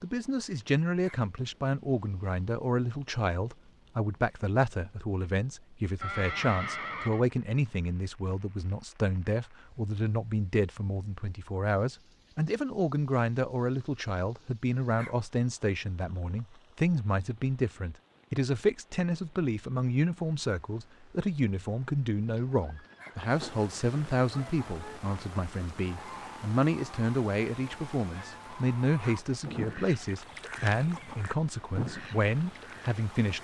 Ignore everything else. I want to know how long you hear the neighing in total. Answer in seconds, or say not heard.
3 s.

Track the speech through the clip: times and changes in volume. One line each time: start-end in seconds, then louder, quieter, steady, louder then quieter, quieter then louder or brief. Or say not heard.
0.0-33.3 steady.